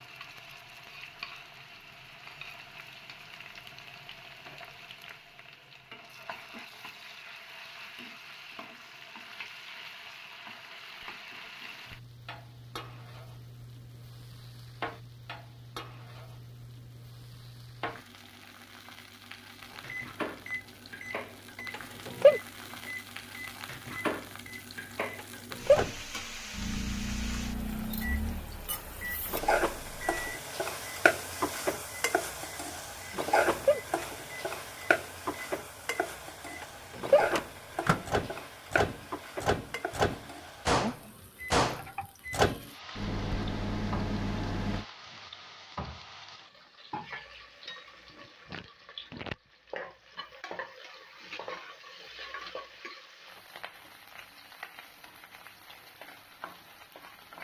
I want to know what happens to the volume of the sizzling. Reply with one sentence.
The loudness of the sizzling goes up, then down.